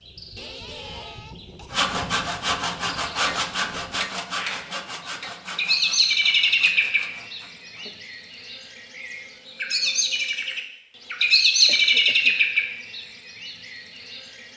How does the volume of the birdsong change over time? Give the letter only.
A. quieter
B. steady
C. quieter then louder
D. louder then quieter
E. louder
E.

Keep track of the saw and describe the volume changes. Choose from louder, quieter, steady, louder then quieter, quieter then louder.
quieter.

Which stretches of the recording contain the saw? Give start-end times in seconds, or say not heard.
1.7-8.0.